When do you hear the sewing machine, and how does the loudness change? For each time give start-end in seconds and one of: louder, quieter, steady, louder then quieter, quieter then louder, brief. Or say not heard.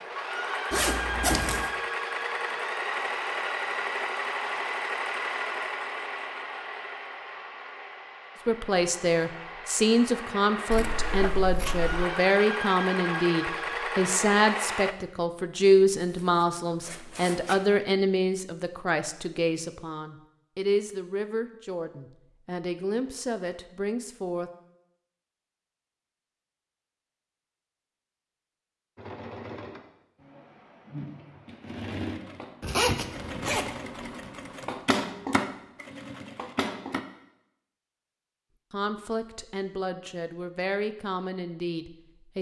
0.0-14.9 quieter then louder
28.9-37.0 louder.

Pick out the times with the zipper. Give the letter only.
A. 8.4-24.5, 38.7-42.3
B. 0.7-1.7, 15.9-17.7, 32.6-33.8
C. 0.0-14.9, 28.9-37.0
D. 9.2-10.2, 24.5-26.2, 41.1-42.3
B.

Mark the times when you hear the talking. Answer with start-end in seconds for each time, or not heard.
8.4-24.5, 38.7-42.3.